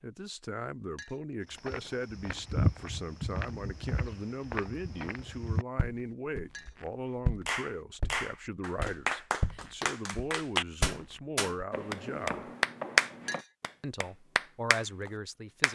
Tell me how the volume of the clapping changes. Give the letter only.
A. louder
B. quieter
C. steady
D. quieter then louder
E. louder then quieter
E.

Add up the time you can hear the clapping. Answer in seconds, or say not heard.
8 s.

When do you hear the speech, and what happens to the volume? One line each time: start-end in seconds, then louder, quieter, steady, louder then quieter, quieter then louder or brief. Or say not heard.
0.0-12.4 steady
13.8-15.7 brief.